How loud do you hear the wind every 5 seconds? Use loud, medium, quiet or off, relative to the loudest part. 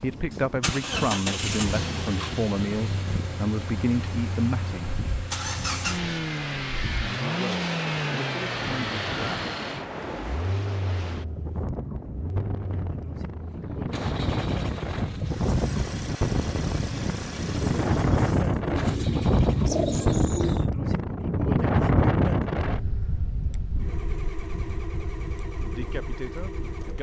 quiet, medium, medium, loud, loud, quiet.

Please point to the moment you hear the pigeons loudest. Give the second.
20 s.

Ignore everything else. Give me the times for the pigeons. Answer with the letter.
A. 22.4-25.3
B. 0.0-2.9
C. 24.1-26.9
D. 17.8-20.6
D.